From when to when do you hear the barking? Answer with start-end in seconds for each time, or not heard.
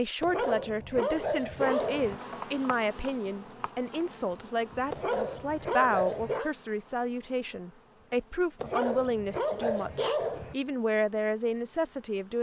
0.2-2.2, 4.9-6.5, 8.6-10.6.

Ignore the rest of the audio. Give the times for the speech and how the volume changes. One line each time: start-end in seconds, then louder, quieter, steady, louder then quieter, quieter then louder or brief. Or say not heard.
0.0-12.3 steady.